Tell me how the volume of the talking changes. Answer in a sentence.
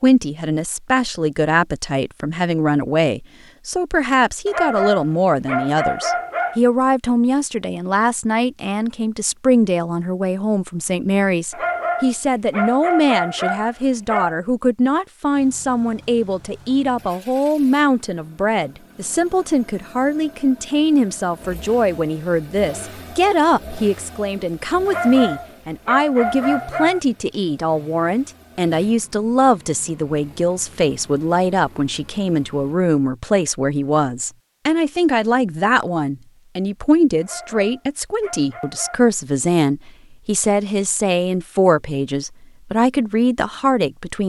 The loudness of the talking stays about the same.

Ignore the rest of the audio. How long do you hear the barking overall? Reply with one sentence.
You can hear the barking for 9 seconds altogether.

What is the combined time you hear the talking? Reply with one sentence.
You can hear the talking for 44 seconds altogether.